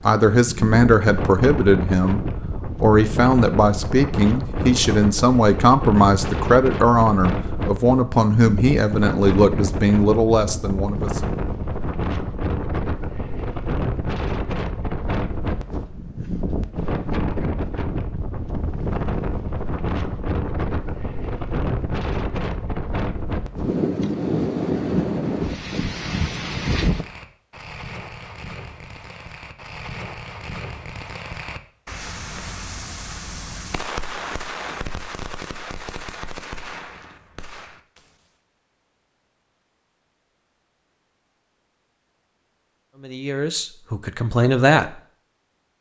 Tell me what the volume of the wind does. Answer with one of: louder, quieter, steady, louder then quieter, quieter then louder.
steady.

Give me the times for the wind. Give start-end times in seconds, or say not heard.
0.0-27.1.